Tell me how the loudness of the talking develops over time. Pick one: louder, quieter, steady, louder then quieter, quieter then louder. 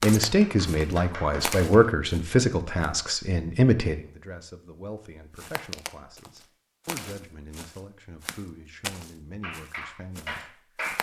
quieter.